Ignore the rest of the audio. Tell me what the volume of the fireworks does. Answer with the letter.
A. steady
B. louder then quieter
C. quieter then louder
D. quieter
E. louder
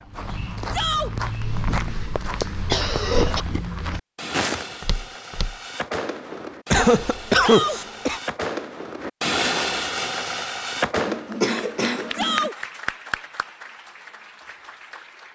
E.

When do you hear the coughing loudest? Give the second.
7 s.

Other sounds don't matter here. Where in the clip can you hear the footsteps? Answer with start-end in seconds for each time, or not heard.
0.0-5.6.